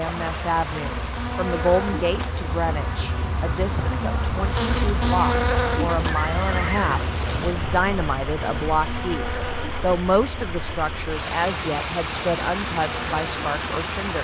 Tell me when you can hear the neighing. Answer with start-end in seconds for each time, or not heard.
6.0-7.0.